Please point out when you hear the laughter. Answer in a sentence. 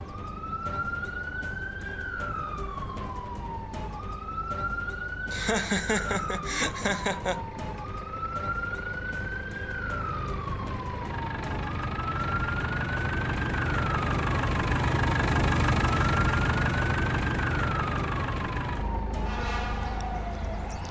The laughter can be heard from 5.3 to 7.5 s.